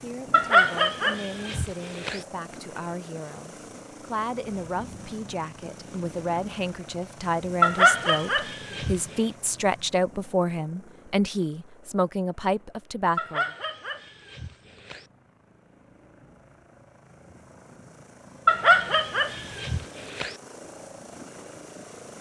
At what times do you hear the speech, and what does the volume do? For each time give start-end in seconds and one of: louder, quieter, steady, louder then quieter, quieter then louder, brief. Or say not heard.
0.0-13.4 louder.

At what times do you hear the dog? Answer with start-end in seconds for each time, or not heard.
0.3-2.2, 7.6-9.0, 13.2-15.1, 18.4-20.4.